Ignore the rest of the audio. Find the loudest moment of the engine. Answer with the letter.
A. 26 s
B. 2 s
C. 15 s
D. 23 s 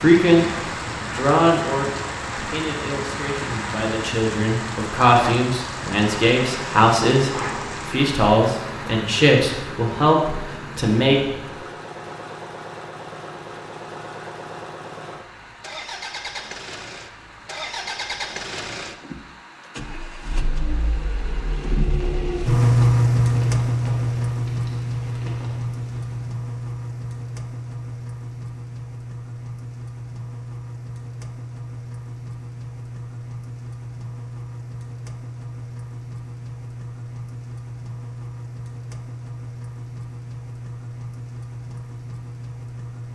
D.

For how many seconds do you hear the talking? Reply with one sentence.
You can hear the talking for 11 seconds altogether.